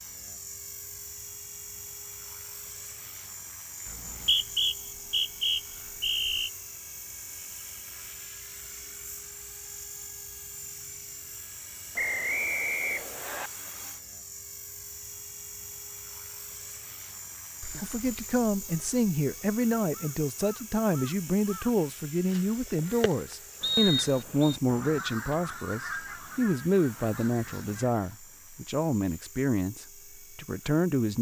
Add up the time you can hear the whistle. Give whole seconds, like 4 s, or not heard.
5 s.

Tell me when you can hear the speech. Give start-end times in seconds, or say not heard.
17.8-31.1.